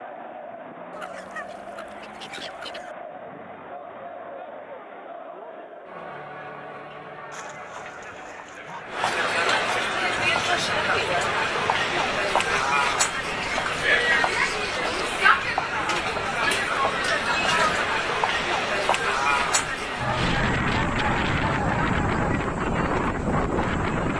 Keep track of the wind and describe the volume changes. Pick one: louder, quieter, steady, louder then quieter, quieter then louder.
louder.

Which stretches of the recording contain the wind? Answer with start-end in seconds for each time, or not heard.
9.9-24.1.